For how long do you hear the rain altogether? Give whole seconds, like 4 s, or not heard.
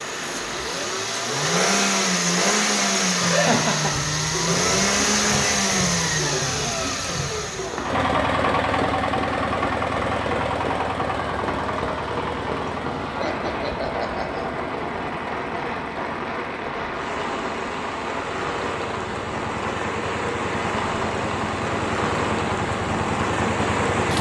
24 s.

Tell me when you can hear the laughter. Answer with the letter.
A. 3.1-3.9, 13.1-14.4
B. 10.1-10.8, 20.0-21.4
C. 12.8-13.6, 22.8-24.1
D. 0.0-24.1
A.